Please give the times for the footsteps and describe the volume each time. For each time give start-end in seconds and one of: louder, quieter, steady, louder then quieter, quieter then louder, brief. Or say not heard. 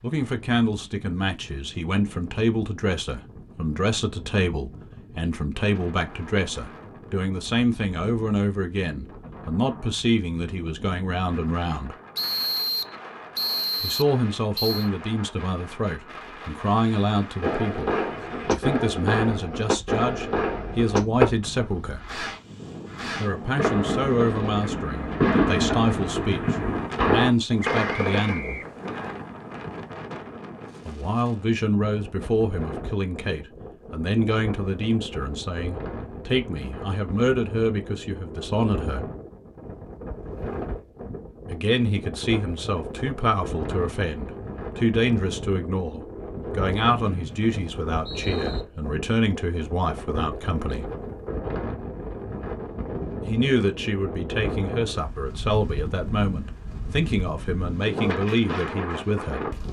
not heard.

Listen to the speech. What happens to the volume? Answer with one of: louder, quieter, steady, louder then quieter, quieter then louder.
steady.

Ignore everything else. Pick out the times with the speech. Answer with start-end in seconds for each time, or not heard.
0.0-11.9, 13.8-22.1, 23.1-28.6, 30.9-39.1, 41.5-50.9, 53.2-59.5.